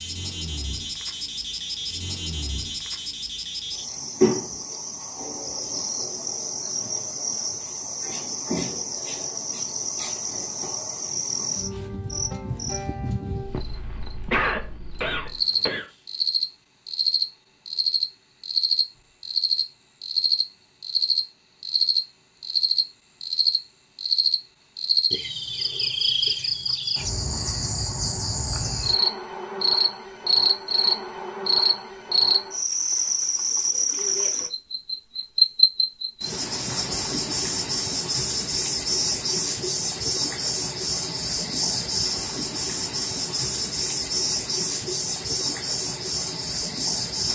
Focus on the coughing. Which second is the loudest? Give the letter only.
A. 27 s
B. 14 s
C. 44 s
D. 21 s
B.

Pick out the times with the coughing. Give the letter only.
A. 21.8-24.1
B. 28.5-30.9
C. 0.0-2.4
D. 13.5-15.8
D.